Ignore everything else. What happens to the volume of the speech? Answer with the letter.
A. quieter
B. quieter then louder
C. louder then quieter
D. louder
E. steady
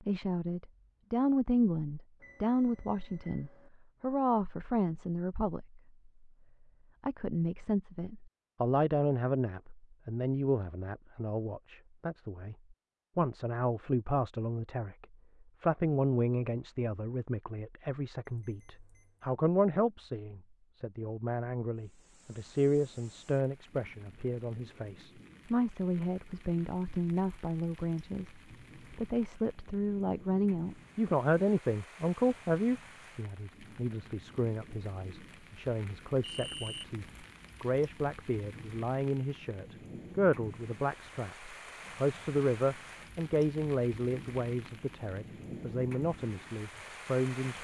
E.